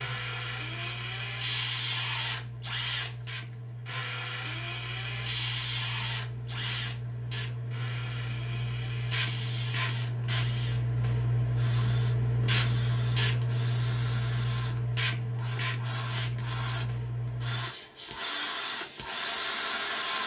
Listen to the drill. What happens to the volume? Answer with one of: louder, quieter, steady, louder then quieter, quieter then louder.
quieter then louder.